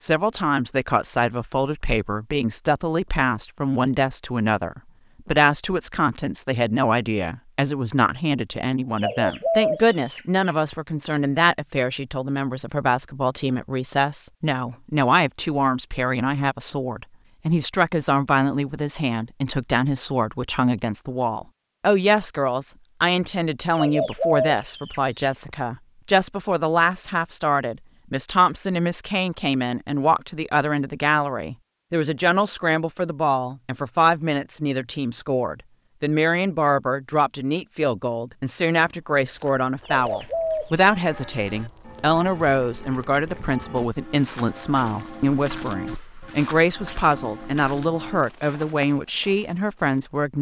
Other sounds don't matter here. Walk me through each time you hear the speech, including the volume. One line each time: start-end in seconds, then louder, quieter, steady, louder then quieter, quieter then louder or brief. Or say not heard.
0.0-50.3 steady.